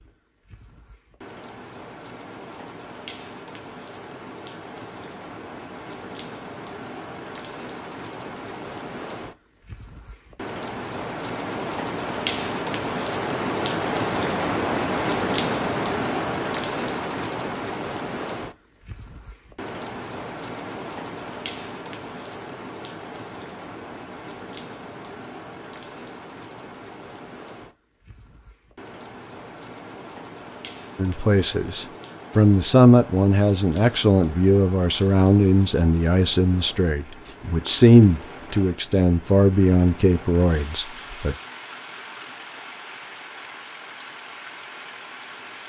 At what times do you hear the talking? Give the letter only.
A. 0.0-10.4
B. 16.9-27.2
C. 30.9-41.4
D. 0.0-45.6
C.